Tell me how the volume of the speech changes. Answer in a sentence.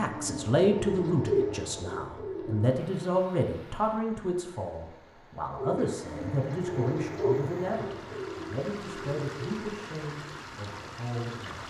The volume of the speech goes down.